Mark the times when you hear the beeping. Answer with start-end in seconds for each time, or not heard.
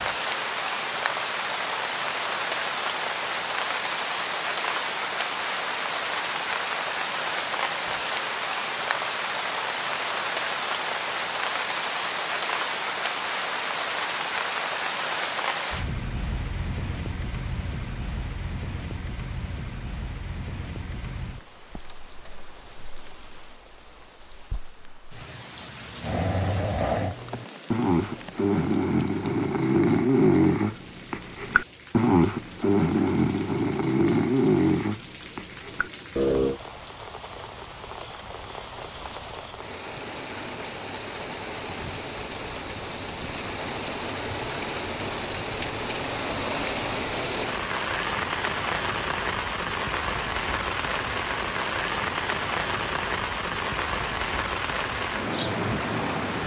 not heard.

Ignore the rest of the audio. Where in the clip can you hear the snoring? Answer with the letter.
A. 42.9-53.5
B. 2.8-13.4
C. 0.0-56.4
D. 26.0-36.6
D.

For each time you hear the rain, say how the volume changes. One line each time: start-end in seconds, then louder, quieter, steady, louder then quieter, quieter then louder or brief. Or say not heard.
0.0-56.4 quieter then louder.